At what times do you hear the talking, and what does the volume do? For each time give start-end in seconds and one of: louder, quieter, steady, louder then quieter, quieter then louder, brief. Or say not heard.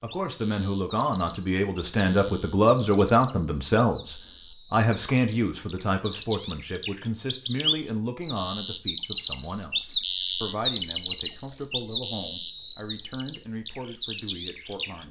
0.0-15.0 quieter.